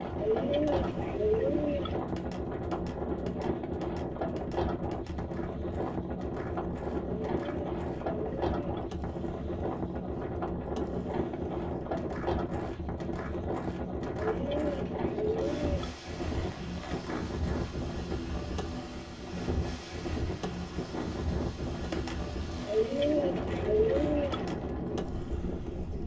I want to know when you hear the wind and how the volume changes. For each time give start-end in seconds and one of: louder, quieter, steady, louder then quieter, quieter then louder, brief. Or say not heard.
0.0-26.0 steady.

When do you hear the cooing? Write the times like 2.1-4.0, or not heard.
0.1-2.0, 7.2-8.9, 14.2-15.9, 22.6-24.4.